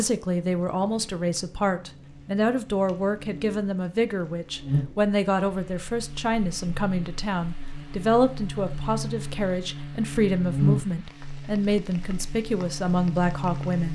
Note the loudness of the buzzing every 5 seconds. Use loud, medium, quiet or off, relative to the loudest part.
medium, medium, loud.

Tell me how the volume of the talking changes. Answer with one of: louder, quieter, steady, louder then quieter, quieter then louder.
steady.